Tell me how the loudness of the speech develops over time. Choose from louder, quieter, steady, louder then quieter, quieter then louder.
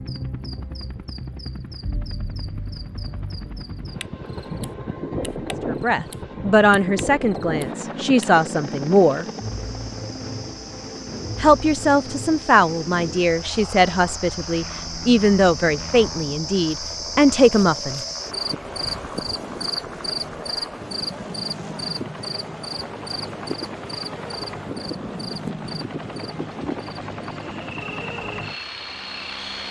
steady.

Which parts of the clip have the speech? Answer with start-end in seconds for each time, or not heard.
5.7-9.2, 11.4-18.0.